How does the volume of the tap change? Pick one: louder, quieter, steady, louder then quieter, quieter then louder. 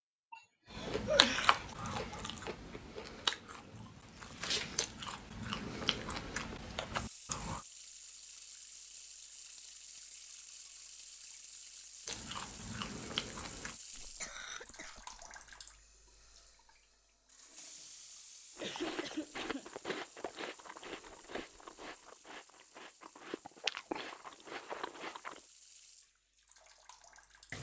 quieter.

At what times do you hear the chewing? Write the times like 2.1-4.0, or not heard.
0.7-7.7, 12.1-13.8, 18.6-25.4.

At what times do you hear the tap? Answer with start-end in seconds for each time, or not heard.
6.9-27.5.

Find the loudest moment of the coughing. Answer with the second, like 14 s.
1 s.